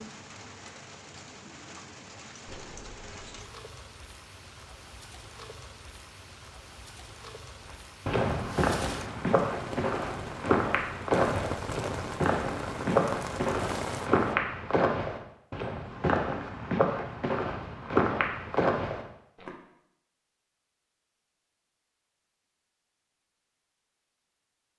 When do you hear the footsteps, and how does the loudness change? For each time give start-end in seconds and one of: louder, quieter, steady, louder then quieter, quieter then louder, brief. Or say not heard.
8.1-19.5 steady.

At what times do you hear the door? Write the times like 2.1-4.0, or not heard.
2.5-3.5.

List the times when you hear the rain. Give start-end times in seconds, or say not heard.
0.0-14.3.